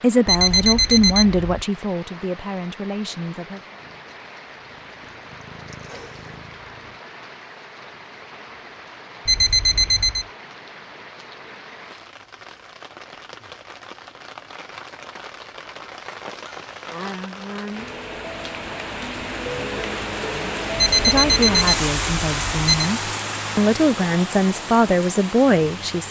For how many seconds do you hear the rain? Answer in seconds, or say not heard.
26 s.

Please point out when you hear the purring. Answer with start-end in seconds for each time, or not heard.
3.8-7.0.